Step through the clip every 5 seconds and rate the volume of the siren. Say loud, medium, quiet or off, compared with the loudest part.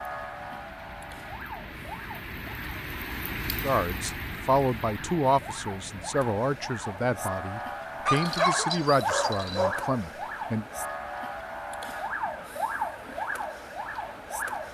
medium, loud, loud.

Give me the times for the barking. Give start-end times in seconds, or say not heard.
8.1-9.8.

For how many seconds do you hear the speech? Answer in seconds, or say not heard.
7 s.